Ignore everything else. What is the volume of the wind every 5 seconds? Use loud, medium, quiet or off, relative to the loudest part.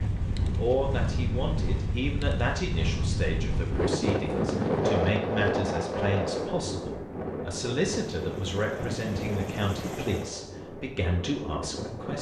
loud, loud, medium.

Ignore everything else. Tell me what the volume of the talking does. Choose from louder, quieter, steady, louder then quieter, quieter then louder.
steady.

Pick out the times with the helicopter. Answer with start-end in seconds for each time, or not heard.
7.9-10.3.